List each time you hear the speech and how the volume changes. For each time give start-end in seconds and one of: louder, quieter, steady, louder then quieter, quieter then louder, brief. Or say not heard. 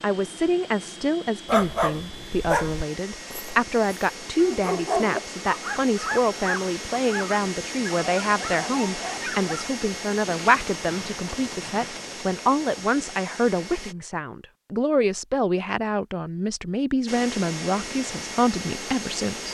0.0-19.5 steady.